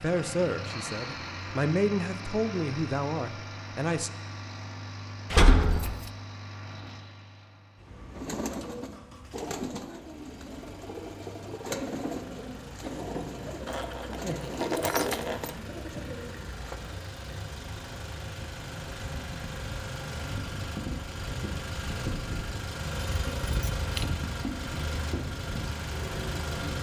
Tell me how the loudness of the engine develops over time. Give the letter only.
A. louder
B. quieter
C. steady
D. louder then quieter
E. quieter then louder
E.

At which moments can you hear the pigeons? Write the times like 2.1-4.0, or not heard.
8.1-17.0.